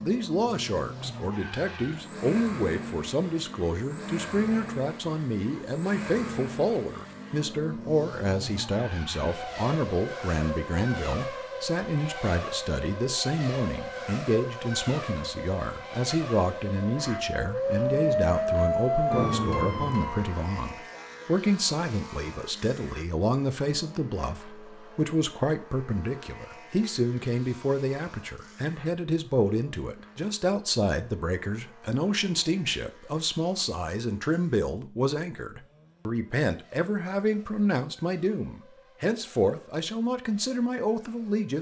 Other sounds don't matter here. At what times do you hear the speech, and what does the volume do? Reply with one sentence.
The speech can be heard from 0.0 to 41.5 s, at a steady volume.